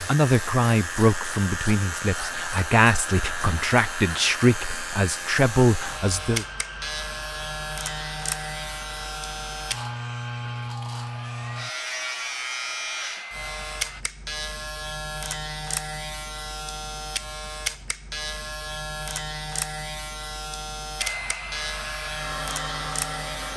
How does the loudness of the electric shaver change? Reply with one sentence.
The loudness of the electric shaver stays about the same.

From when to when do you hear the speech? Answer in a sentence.
You can hear the speech from 0.0 to 6.5 s.